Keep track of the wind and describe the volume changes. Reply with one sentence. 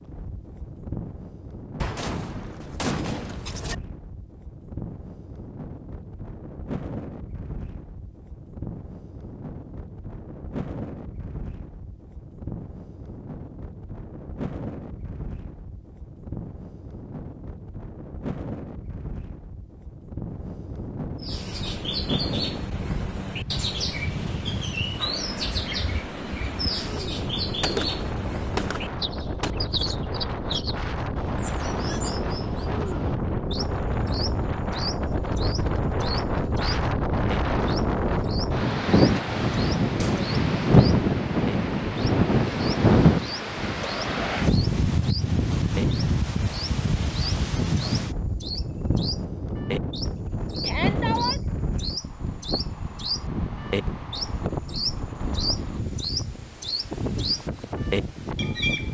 The volume of the wind goes up, then down.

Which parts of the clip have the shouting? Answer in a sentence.
You can hear the shouting from 50.6 to 51.4 s.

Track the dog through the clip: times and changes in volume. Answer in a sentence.
You can't hear the dog here.